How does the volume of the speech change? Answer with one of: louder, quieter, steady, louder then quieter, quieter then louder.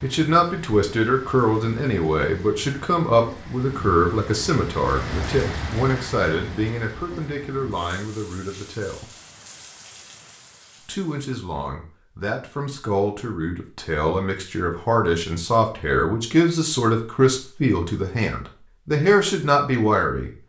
quieter then louder.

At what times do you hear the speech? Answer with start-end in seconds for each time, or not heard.
0.0-9.1, 10.8-20.3.